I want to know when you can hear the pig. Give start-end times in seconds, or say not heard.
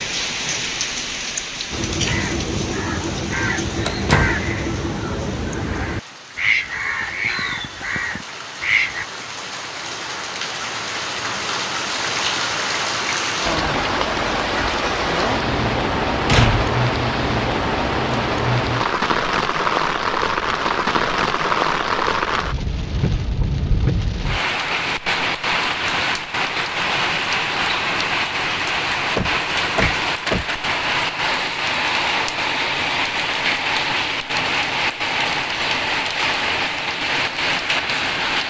not heard.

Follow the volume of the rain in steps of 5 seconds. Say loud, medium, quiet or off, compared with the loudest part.
medium, quiet, loud, loud, loud, loud, loud, loud.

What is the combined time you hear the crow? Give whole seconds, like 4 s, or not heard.
7 s.